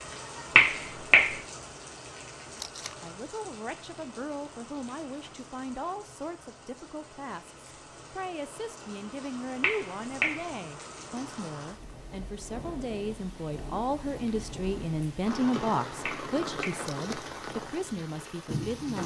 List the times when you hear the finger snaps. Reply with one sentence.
You can hear the finger snaps from 0.6 to 1.4 s, from 9.6 to 10.4 s and from 16.1 to 16.9 s.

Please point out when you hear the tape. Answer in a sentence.
You can hear the tape from 2.5 to 3.0 s and from 16.8 to 17.2 s.